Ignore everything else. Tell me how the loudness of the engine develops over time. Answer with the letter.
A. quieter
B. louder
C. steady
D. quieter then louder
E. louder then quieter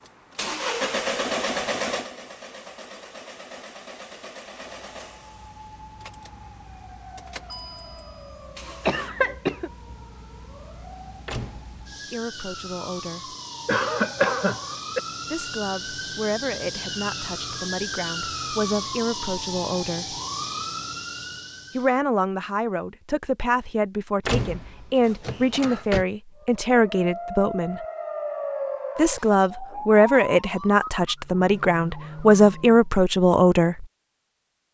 D.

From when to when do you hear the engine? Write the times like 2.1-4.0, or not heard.
0.0-9.1.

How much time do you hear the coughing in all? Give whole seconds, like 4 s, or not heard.
3 s.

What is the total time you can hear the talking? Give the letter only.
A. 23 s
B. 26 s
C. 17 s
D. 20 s
C.